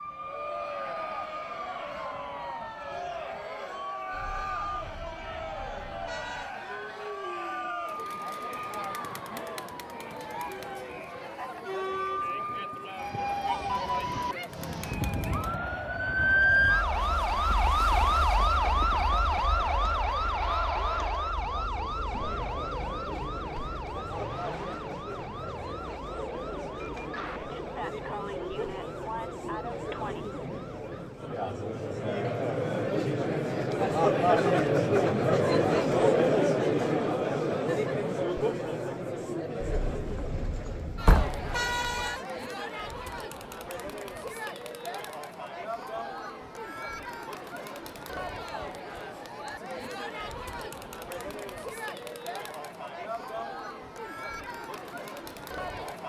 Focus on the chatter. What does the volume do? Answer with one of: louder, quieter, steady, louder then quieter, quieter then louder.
louder then quieter.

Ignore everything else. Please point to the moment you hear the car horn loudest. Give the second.
42 s.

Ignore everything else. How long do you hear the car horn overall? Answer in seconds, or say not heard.
6 s.